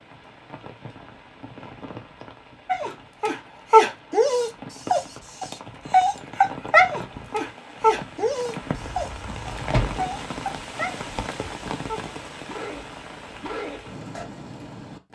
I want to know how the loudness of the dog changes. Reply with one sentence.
The loudness of the dog goes down.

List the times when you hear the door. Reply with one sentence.
The door can be heard from 8.7 to 10.1 s.